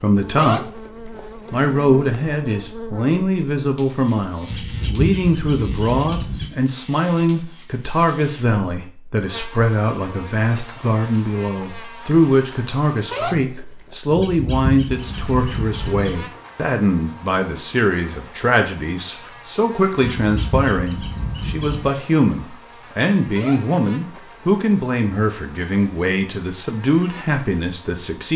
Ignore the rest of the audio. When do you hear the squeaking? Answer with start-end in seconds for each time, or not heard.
4.5-6.5, 14.2-16.1, 20.0-21.9.